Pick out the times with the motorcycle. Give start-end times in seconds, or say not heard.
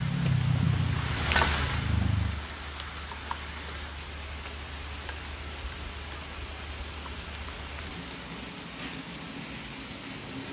0.0-2.4.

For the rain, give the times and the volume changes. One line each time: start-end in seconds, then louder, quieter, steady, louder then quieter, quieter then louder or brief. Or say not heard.
0.0-10.4 quieter.